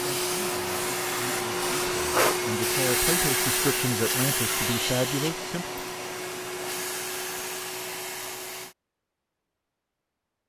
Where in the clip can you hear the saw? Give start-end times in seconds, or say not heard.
not heard.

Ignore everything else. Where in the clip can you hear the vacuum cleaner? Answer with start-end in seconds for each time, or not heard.
0.0-8.8.